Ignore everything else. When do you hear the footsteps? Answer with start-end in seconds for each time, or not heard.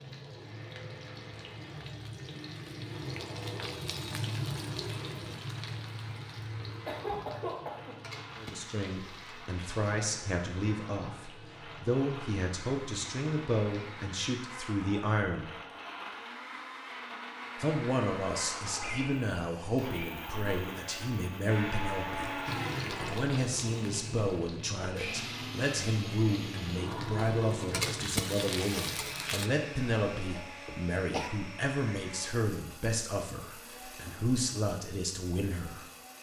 not heard.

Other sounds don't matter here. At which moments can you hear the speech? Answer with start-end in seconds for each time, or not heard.
8.3-15.5, 17.6-35.9.